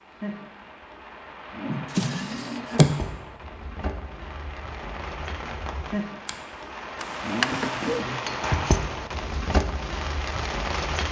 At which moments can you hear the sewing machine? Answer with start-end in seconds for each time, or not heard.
not heard.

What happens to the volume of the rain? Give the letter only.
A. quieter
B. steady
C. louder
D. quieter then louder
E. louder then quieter
C.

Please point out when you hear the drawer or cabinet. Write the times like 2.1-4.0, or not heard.
1.6-3.0, 7.0-8.1.